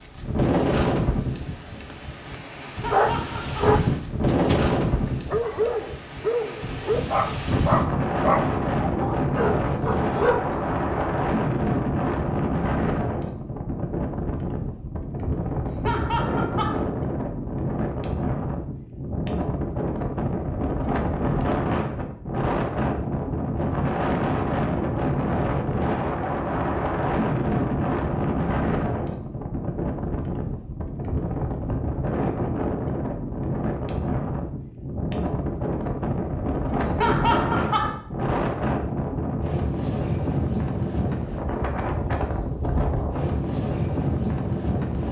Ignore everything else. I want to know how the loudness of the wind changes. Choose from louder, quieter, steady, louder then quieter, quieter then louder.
steady.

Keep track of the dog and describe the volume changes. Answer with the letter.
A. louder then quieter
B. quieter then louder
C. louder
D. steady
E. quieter
D.